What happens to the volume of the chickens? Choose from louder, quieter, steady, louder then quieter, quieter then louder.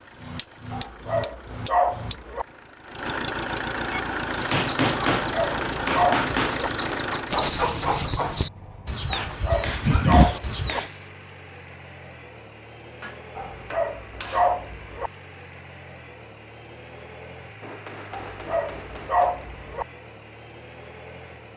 louder.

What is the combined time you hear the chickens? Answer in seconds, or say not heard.
7 s.